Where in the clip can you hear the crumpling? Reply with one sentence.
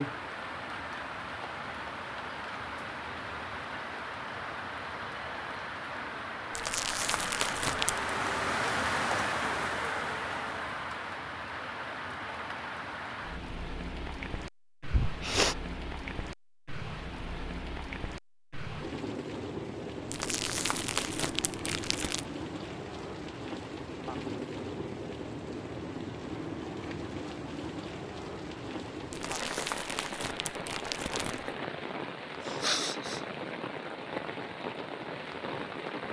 The crumpling can be heard from 6.5 to 8.1 s, from 20.1 to 22.2 s and from 29.1 to 31.6 s.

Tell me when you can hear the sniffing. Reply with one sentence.
The sniffing can be heard from 14.9 to 15.6 s and from 32.4 to 33.2 s.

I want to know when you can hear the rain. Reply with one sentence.
The rain can be heard from 0.0 to 36.0 s.